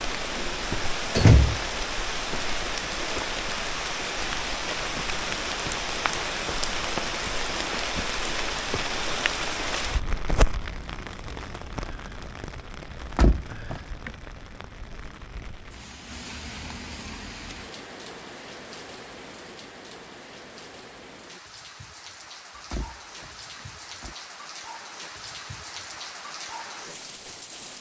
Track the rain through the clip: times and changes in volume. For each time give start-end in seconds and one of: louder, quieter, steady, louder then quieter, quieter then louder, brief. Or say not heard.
0.0-27.7 quieter.